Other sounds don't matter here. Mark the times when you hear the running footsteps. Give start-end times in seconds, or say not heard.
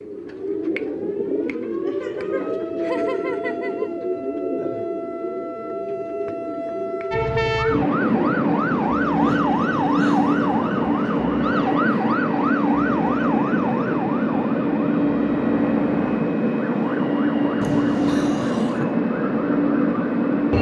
not heard.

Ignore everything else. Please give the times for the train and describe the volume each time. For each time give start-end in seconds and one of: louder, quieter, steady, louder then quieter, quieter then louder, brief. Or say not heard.
7.1-20.5 steady.